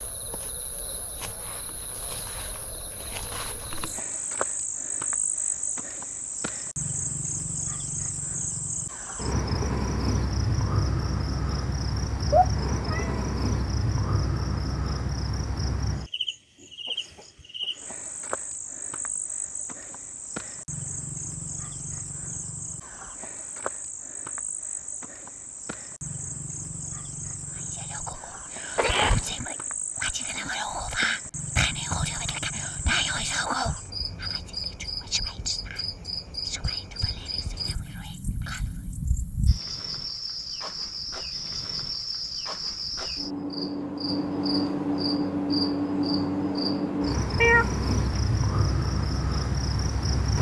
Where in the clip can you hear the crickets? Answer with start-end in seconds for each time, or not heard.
0.0-50.3.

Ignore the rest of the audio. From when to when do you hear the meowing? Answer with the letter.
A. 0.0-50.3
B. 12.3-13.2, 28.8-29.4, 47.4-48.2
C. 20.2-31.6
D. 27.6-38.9
B.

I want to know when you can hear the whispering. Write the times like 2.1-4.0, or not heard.
27.6-38.9.